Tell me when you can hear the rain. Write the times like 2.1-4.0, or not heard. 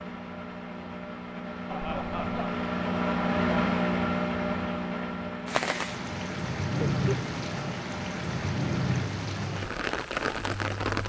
5.5-11.0.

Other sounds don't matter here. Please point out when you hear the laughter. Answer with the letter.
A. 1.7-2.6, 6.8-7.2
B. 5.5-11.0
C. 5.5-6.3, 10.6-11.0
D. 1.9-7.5
A.